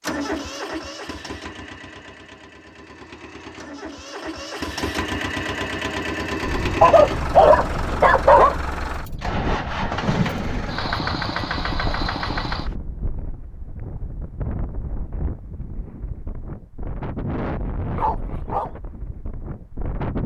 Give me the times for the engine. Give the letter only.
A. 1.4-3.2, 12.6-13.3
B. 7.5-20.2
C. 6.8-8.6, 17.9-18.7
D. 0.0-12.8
D.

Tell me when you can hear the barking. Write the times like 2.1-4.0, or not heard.
6.8-8.6, 17.9-18.7.